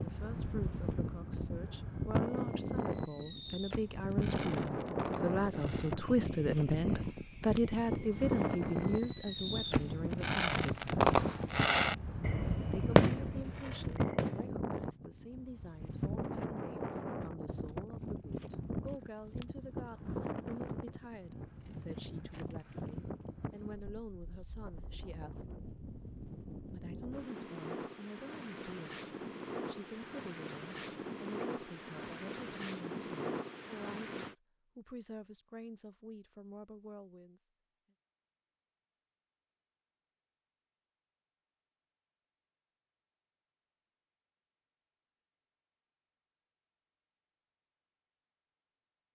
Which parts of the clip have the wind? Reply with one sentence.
You can hear the wind from 0.0 to 34.4 s.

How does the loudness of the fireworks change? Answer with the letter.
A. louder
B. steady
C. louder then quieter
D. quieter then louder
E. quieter
A.